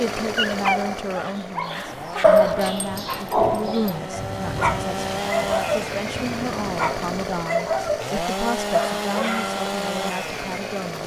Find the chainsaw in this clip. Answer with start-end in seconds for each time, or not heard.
0.0-11.0.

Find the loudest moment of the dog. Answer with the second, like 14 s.
2 s.